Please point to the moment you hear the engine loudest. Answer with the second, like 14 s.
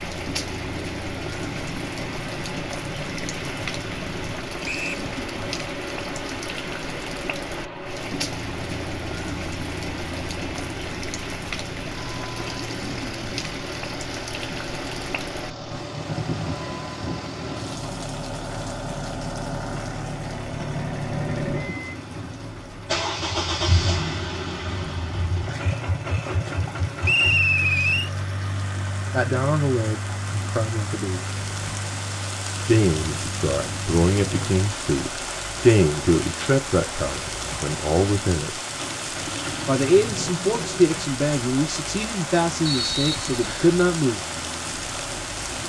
23 s.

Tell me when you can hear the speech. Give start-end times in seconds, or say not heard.
29.1-31.2, 32.6-38.6, 39.6-44.2.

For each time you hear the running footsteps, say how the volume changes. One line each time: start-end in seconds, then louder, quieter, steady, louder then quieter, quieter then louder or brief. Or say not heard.
not heard.